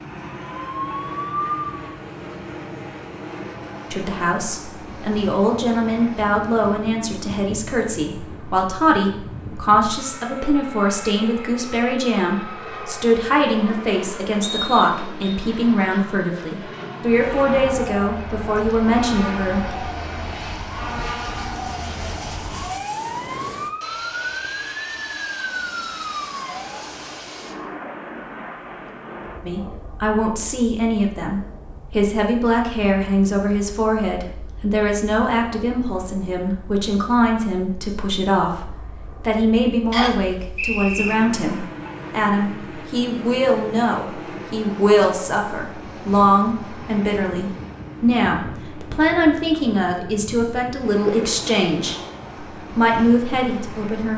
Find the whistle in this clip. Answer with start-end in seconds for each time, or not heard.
14.4-15.2, 39.9-41.1.